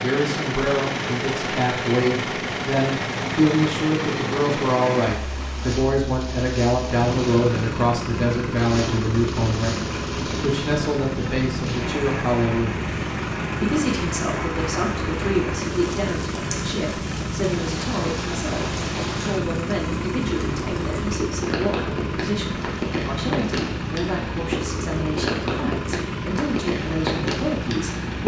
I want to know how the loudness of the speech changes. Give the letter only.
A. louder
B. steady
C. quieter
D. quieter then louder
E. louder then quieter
C.